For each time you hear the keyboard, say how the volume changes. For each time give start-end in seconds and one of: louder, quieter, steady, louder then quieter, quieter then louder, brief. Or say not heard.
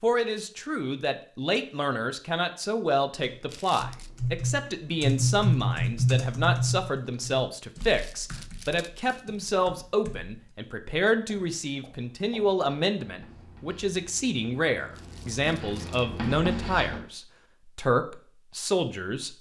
3.2-10.3 louder then quieter.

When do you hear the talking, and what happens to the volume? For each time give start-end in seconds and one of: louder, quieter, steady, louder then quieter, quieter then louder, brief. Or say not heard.
0.0-19.3 steady.